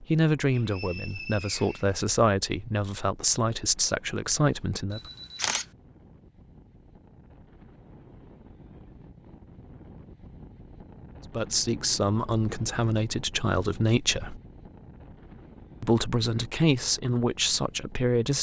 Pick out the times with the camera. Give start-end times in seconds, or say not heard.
4.9-5.7.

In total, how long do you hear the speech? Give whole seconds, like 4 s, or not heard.
11 s.